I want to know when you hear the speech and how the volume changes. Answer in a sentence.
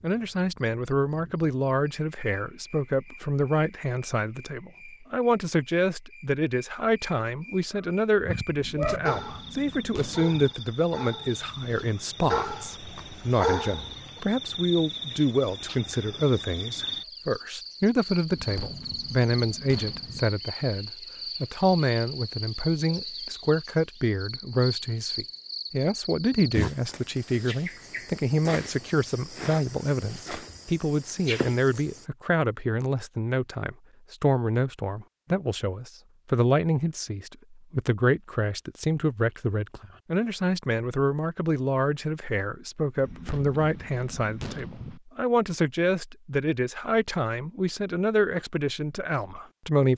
You can hear the speech from 0.0 to 49.9 s, at a steady volume.